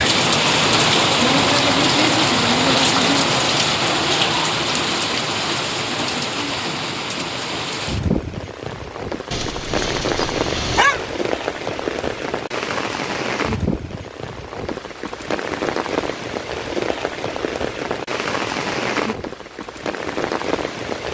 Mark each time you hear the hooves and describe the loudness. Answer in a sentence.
You can't hear the hooves here.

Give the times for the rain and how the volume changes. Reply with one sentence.
You can hear the rain from 0.0 to 21.0 s, getting quieter.